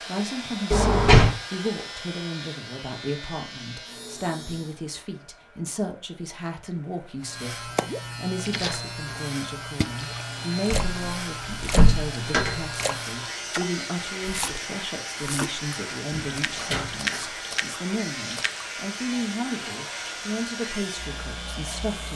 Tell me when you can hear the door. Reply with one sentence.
The door can be heard from 0.7 to 1.3 s, from 10.7 to 12.6 s and from 16.1 to 17.2 s.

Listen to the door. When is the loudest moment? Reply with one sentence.
The volume of the door peaks at 1 second.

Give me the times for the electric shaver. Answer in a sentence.
The electric shaver can be heard from 0.0 to 4.8 s and from 7.2 to 22.1 s.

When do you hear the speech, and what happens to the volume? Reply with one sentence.
The speech can be heard from 0.1 to 22.1 s, at a steady volume.